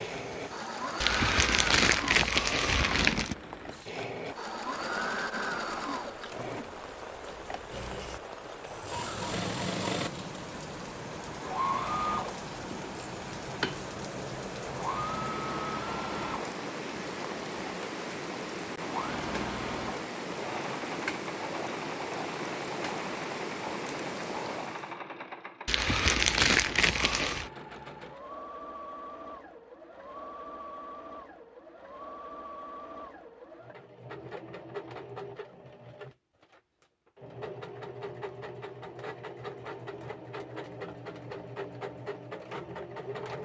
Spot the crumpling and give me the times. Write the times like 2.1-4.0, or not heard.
1.0-3.4, 25.6-27.5.